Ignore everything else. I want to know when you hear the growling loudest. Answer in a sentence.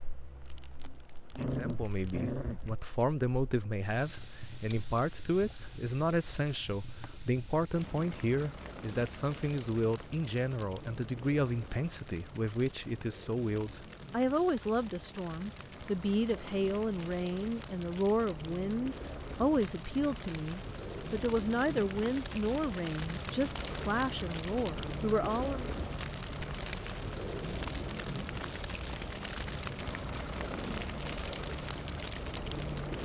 The loudest moment of the growling is at 2 seconds.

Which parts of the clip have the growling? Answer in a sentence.
The growling can be heard from 1.3 to 2.9 s.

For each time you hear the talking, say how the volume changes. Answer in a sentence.
You can hear the talking from 1.6 to 25.7 s, at a steady volume.